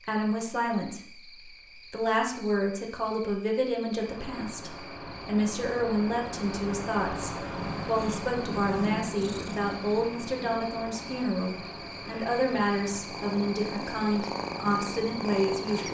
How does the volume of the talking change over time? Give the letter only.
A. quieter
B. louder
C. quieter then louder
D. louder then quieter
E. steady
E.